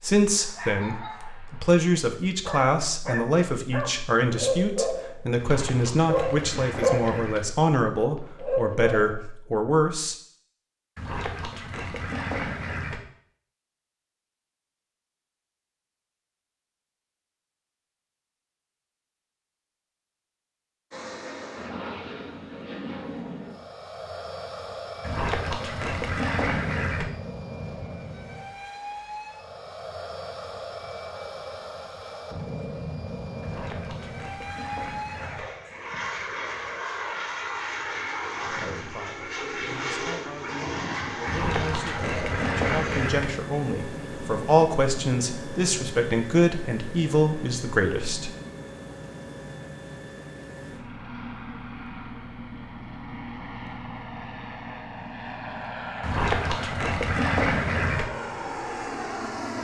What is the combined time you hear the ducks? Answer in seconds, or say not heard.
12 s.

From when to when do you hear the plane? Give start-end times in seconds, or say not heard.
20.9-59.6.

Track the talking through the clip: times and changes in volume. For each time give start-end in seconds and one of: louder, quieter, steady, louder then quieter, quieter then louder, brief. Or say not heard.
0.0-10.2 steady
38.5-48.3 louder.